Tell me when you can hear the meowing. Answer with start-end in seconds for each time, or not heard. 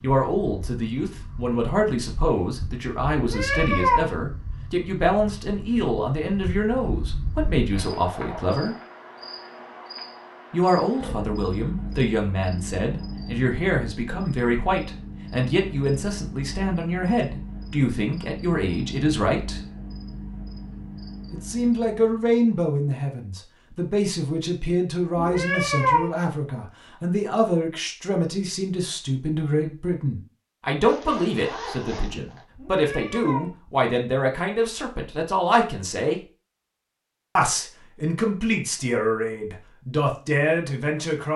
3.1-4.1, 25.1-26.1, 32.5-33.5.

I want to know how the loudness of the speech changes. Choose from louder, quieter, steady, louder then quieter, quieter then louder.
steady.